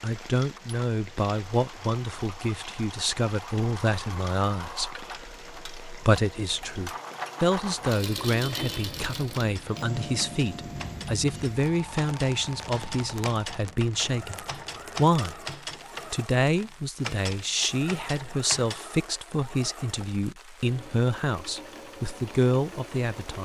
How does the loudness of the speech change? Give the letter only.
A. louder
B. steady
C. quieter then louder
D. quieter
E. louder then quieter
B.